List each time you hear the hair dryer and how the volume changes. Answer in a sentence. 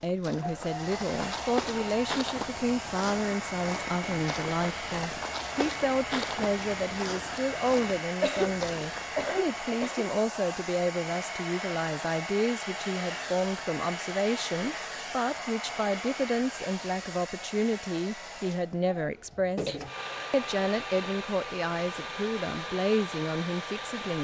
You can hear the hair dryer from 0.0 to 24.1 s, at a steady volume.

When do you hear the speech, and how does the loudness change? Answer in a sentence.
The speech can be heard from 0.0 to 24.1 s, at a steady volume.